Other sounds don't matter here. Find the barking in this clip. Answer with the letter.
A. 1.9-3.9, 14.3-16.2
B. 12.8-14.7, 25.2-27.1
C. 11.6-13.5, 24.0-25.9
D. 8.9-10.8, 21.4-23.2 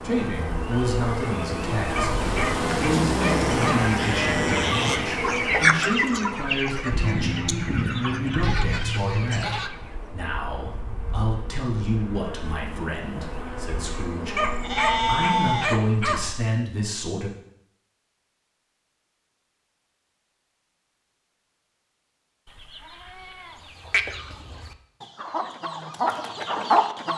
A.